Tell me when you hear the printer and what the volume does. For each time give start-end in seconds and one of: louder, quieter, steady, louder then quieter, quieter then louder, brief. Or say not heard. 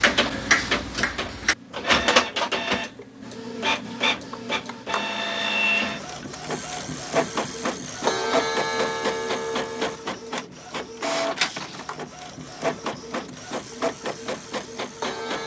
0.0-15.4 quieter.